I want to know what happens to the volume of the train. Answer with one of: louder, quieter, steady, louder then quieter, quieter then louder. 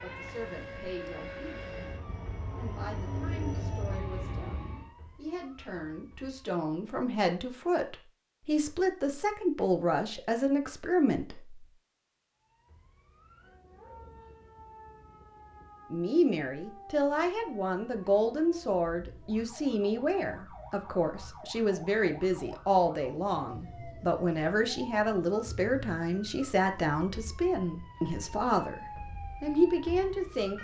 louder.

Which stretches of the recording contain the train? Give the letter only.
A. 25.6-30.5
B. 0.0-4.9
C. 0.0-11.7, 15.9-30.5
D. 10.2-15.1
B.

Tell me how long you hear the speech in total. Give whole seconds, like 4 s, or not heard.
26 s.